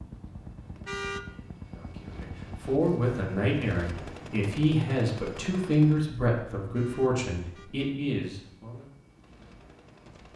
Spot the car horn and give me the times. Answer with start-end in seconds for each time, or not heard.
0.8-1.2, 6.7-8.0.